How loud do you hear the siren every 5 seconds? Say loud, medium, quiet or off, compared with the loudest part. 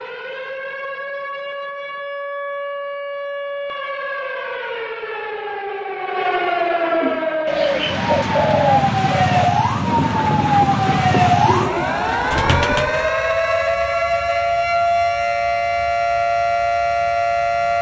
medium, loud, loud, loud.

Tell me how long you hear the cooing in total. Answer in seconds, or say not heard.
6 s.